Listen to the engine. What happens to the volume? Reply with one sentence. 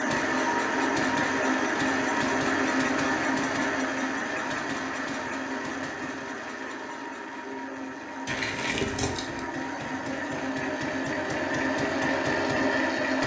The volume of the engine goes down, then up.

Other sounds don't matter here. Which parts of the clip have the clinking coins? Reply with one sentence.
You can hear the clinking coins from 8.2 to 9.4 s.